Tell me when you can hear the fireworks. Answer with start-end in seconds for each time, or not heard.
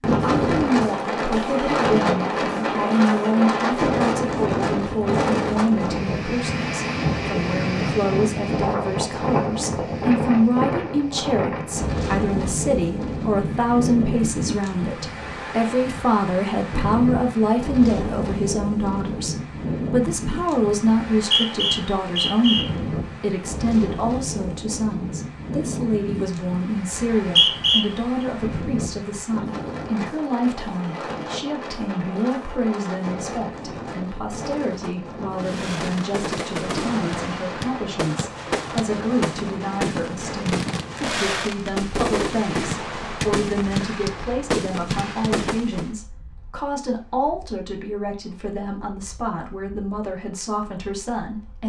35.4-45.9.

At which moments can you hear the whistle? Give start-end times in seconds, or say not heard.
21.1-22.6, 26.9-27.9.